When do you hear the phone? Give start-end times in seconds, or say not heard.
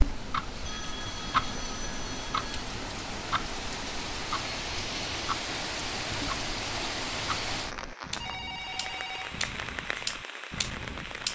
0.7-2.5, 8.2-9.4.